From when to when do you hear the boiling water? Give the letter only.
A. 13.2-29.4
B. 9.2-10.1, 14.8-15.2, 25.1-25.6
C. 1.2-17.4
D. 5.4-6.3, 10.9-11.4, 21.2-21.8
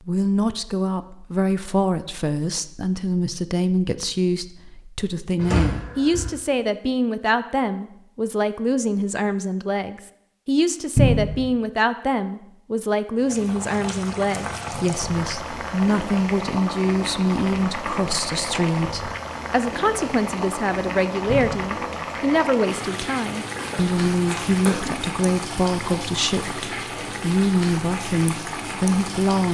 A.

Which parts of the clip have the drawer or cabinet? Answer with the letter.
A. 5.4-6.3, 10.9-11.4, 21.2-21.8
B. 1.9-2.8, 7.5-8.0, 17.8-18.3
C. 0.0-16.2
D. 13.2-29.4
A.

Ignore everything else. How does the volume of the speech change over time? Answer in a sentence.
The volume of the speech stays about the same.